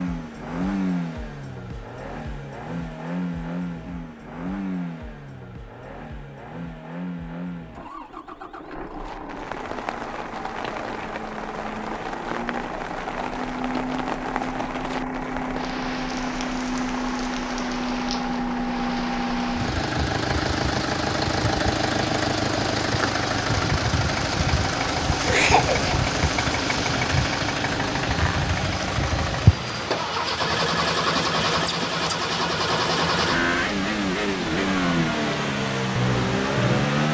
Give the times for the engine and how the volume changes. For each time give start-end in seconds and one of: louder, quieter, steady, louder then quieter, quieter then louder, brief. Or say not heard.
0.0-37.0 louder.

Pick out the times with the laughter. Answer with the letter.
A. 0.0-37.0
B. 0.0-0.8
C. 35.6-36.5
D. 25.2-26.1
D.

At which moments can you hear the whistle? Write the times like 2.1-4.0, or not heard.
not heard.